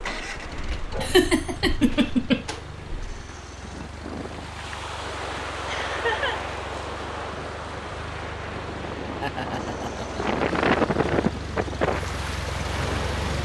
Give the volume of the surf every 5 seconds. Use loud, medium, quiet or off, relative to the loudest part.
quiet, medium, loud.